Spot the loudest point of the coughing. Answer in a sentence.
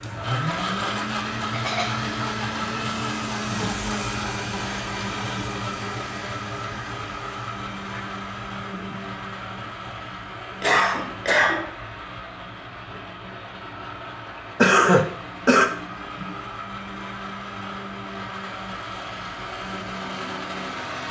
The loudest moment of the coughing is at 15 seconds.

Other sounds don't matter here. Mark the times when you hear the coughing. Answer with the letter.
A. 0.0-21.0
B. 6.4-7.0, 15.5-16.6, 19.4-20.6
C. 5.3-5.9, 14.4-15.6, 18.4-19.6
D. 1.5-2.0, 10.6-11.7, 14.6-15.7
D.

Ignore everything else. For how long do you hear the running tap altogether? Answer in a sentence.
The running tap can be heard for 21 seconds in total.